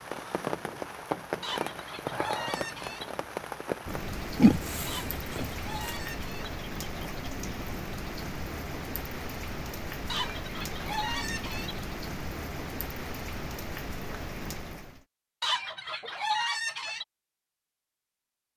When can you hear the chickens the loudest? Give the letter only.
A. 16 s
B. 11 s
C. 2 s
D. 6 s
A.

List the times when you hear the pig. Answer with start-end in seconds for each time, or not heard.
4.3-5.9.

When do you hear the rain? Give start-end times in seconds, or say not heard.
0.0-15.1.